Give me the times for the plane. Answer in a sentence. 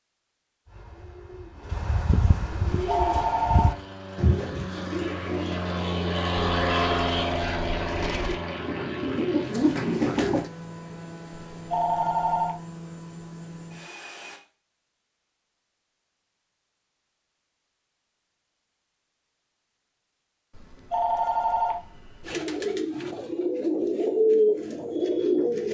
You can hear the plane from 2.6 to 14.4 s.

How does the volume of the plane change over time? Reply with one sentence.
The volume of the plane goes up, then down.